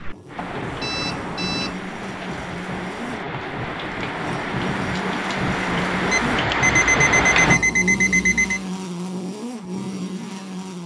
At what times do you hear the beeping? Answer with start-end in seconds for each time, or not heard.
0.3-1.8, 6.1-8.6.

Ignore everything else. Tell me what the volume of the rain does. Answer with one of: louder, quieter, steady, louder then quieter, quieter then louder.
louder.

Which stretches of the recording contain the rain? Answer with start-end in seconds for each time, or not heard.
0.0-7.6.